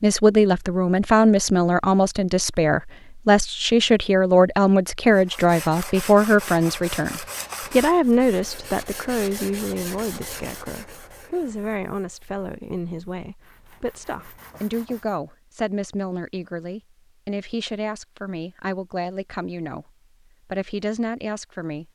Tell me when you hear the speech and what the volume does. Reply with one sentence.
The speech can be heard from 0.0 to 21.8 s, getting quieter.